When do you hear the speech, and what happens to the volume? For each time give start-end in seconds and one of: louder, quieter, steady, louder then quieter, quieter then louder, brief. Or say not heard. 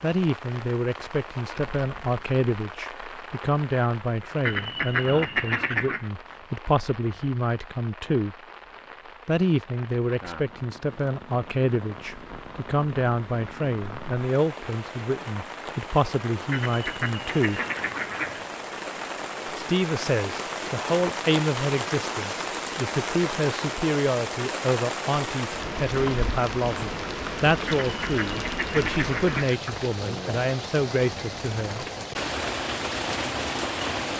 0.0-8.3 steady
9.2-17.6 steady
19.6-31.9 steady.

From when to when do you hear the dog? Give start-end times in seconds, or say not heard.
not heard.